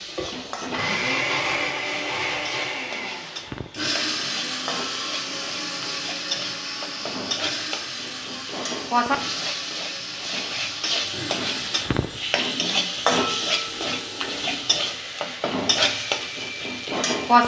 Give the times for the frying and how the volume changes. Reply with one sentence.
You can hear the frying from 0.0 to 17.4 s, getting louder.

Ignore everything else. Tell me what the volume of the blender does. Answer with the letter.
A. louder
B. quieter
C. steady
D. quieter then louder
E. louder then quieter
B.